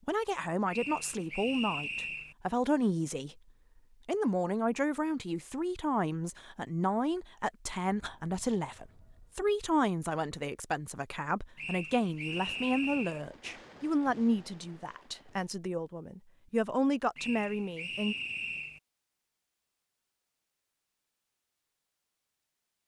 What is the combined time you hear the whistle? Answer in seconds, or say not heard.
5 s.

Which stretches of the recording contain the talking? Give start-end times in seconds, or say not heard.
0.1-3.4, 4.0-18.1.